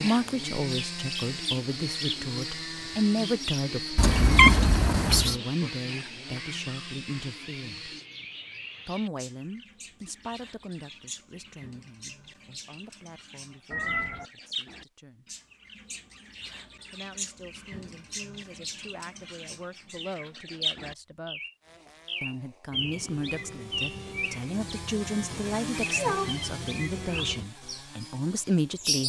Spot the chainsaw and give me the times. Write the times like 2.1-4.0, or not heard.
0.0-8.1, 21.6-29.0.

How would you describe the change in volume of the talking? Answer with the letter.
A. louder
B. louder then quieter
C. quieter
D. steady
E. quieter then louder
E.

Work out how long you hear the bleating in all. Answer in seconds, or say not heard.
not heard.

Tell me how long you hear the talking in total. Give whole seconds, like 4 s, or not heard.
26 s.